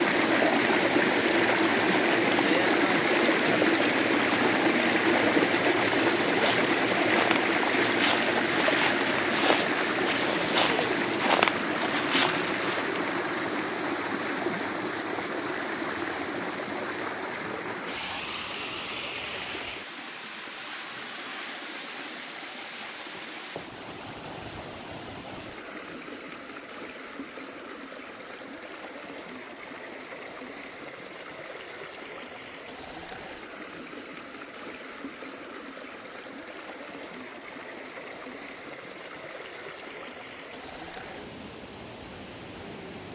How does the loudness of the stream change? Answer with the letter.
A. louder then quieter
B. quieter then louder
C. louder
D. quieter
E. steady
D.